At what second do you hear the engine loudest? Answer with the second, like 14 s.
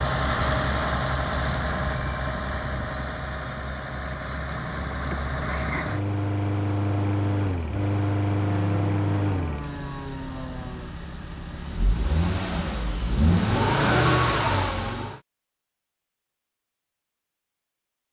14 s.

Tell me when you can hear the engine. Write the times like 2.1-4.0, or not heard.
0.0-15.2.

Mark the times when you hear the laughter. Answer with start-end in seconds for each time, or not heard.
5.1-6.0.